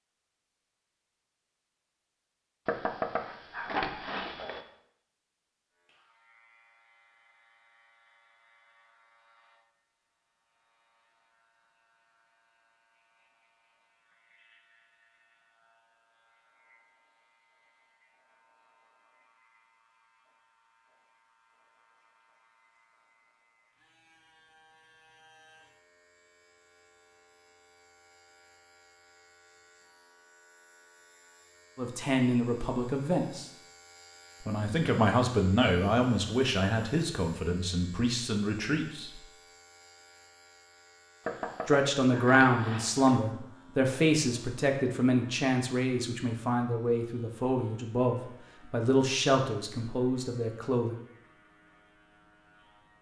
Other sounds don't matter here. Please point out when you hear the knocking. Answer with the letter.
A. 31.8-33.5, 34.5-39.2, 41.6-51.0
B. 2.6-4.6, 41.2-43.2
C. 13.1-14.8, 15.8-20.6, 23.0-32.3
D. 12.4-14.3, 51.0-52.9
B.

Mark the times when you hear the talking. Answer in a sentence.
You can hear the talking from 31.8 to 33.5 s, from 34.5 to 39.2 s and from 41.6 to 51.0 s.